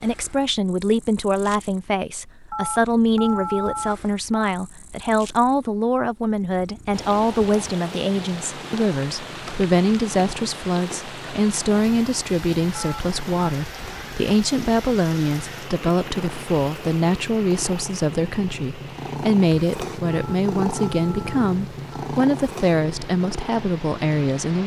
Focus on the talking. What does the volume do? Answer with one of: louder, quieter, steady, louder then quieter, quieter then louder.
steady.